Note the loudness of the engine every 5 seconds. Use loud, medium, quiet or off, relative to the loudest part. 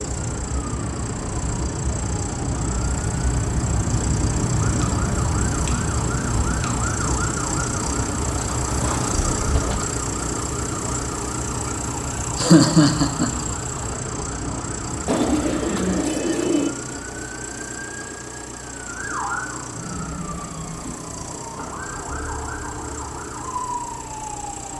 loud, loud, loud, medium, medium.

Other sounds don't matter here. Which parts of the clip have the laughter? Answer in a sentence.
The laughter can be heard from 12.3 to 13.3 s.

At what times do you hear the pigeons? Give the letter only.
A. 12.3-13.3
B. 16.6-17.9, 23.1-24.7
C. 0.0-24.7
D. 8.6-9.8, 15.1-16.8
D.